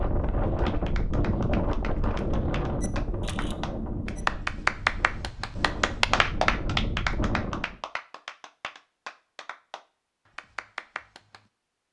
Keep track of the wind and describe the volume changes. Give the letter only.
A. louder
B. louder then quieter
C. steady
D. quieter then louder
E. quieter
D.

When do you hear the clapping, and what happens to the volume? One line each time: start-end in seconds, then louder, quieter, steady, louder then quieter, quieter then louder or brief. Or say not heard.
0.4-11.4 louder then quieter.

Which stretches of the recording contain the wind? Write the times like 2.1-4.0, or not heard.
0.0-7.8.